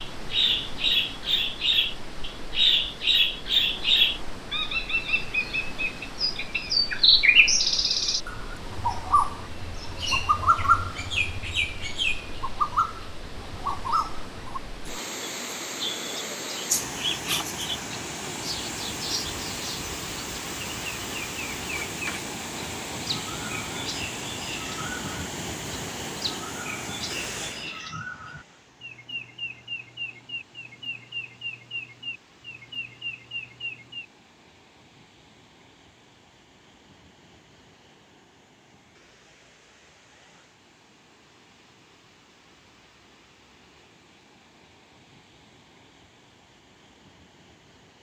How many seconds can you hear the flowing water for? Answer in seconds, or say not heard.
48 s.